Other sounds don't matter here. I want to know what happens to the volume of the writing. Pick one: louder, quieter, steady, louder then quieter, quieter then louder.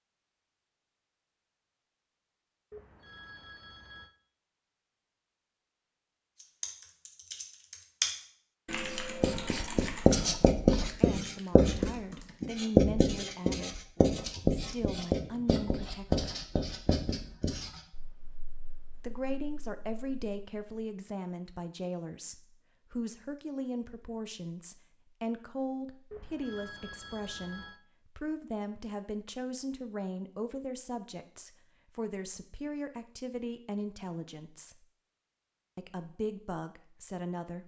quieter.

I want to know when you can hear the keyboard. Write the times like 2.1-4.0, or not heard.
6.4-12.5.